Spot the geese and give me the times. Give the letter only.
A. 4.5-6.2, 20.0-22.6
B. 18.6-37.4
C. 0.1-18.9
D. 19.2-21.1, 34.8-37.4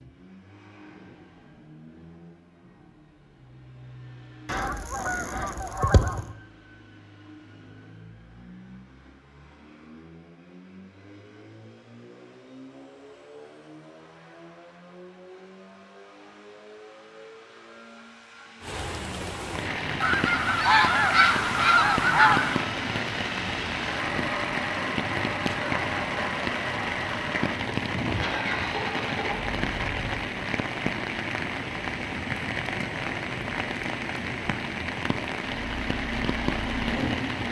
A.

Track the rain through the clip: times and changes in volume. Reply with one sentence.
The rain can be heard from 18.6 to 37.4 s, at a steady volume.